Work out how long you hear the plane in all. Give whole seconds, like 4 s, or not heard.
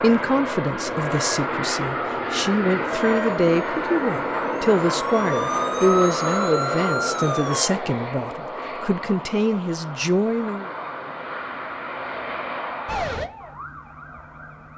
13 s.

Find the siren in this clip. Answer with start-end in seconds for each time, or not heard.
2.9-7.7, 12.8-14.7.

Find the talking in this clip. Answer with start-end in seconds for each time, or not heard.
0.0-10.7.